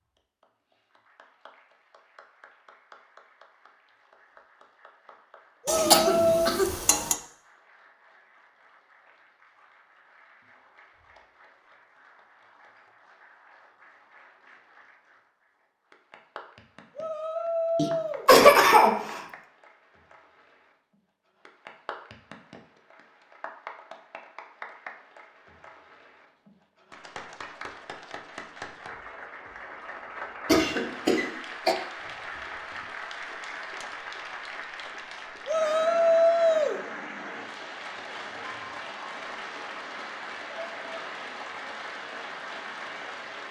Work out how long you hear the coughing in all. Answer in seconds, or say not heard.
4 s.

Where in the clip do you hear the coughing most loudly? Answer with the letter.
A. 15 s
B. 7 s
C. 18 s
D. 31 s
C.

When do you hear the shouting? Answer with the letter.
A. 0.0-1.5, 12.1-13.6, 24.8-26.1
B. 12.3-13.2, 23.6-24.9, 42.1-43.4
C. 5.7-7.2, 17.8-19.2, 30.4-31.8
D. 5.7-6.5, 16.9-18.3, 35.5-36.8
D.